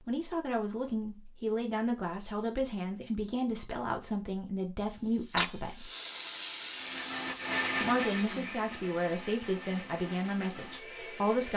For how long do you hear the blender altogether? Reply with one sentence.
You can hear the blender for 5 seconds altogether.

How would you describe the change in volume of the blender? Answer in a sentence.
The volume of the blender goes down.